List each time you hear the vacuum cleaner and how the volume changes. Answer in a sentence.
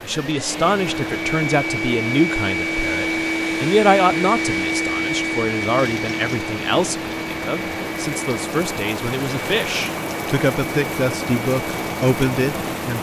You can hear the vacuum cleaner from 0.0 to 12.9 s, getting quieter.